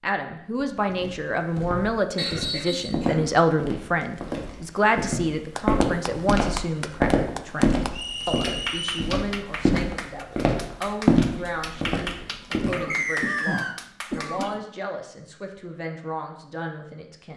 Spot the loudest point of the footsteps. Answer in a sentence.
The volume of the footsteps peaks at 11 seconds.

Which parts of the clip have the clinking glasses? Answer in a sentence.
The clinking glasses can't be heard in this clip.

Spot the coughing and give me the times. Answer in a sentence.
You can hear the coughing from 2.1 to 3.4 s and from 12.6 to 14.6 s.